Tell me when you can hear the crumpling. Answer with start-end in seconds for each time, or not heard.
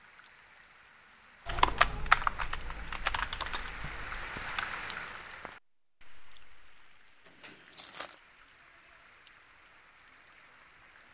7.2-8.2.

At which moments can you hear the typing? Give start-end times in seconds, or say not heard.
1.4-4.7.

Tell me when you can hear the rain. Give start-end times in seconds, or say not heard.
0.0-11.0.